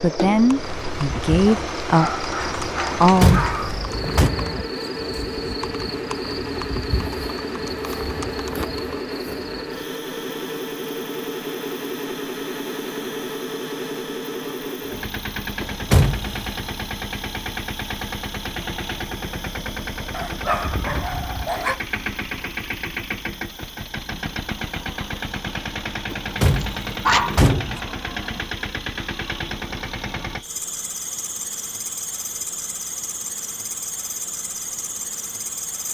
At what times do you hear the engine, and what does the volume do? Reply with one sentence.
The engine can be heard from 0.0 to 35.8 s, at a steady volume.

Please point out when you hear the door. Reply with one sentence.
The door can be heard from 2.9 to 4.3 s, from 15.6 to 16.4 s and from 26.1 to 27.8 s.